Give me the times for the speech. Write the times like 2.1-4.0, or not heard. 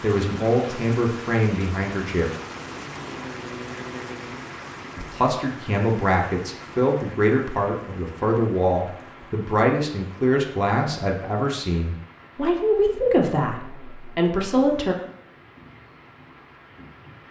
0.0-2.2, 5.0-14.9.